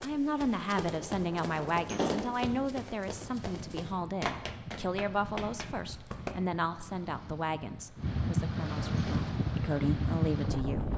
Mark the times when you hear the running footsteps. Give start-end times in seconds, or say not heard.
0.0-6.3.